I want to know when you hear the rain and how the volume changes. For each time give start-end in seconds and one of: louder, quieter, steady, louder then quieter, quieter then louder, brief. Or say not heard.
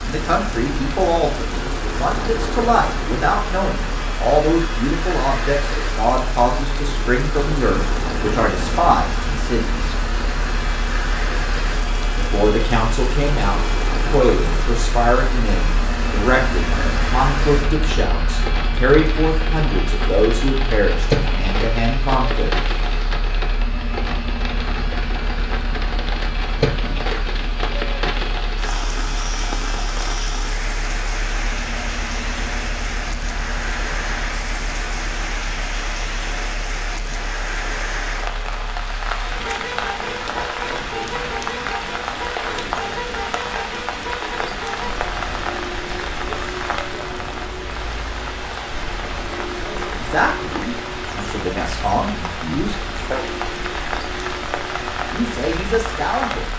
0.0-56.5 steady.